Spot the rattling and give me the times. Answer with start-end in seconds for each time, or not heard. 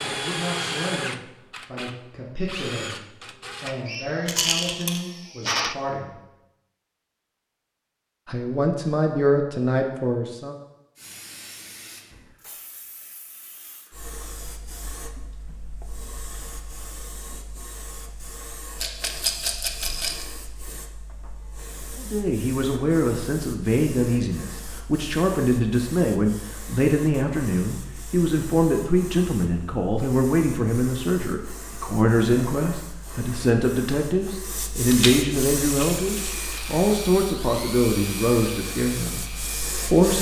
4.2-5.0, 18.8-20.2, 34.9-36.8.